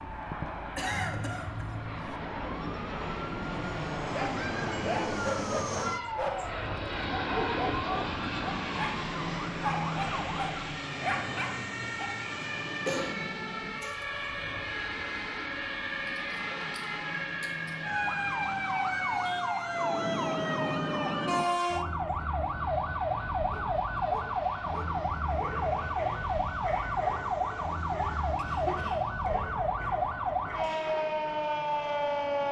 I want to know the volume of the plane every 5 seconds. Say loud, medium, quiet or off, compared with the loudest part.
loud, loud, medium, medium, quiet, quiet, quiet.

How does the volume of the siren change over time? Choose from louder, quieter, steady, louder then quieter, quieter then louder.
louder.